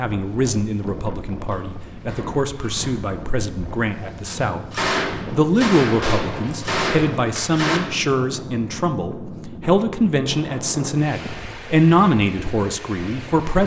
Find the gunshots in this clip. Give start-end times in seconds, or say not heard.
4.2-7.8.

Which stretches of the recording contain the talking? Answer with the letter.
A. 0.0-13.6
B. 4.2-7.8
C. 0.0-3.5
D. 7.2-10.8
A.